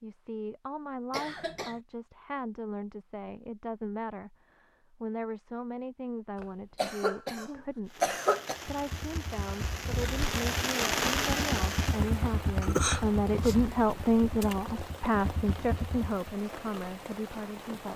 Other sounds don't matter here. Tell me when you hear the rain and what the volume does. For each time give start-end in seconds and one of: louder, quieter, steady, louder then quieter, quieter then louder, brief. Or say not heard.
7.8-17.9 louder then quieter.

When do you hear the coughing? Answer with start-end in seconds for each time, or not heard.
1.1-1.8, 6.4-8.6, 12.6-13.6.